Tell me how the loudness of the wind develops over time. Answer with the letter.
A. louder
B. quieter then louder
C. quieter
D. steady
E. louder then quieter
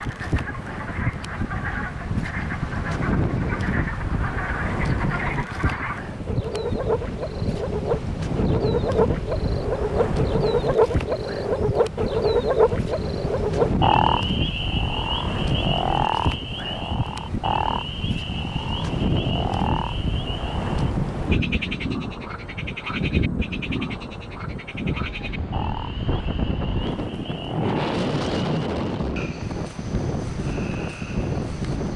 D.